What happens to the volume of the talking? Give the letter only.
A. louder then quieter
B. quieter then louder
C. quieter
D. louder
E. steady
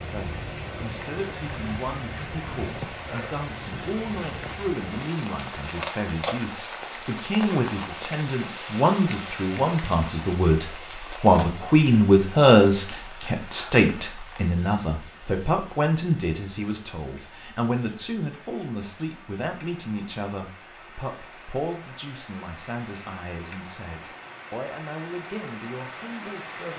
A.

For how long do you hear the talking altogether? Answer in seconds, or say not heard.
27 s.